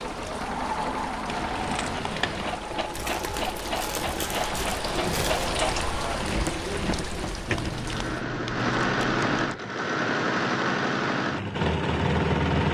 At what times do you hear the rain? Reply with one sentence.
The rain can be heard from 0.0 to 8.2 s.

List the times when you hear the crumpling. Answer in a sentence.
The crumpling can be heard from 2.9 to 5.5 s.